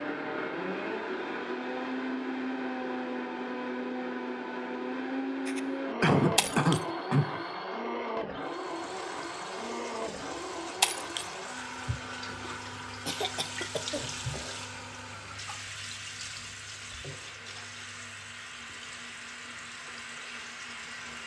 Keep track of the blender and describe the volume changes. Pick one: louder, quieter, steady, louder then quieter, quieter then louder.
quieter.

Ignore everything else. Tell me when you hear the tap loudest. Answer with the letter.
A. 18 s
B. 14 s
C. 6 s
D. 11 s
B.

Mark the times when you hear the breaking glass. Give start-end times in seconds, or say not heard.
6.3-6.8, 10.8-11.3.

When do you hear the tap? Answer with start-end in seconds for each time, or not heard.
8.4-21.2.